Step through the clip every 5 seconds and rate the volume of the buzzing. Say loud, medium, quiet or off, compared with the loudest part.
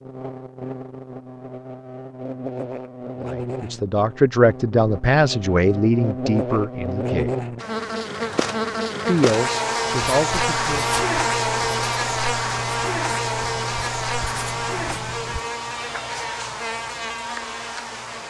medium, loud, loud, medium.